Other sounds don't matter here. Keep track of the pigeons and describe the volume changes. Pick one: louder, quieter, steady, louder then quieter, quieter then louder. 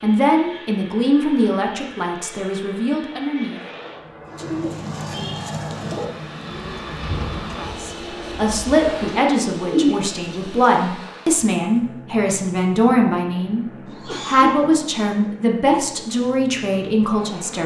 quieter then louder.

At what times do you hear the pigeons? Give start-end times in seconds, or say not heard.
4.3-10.7.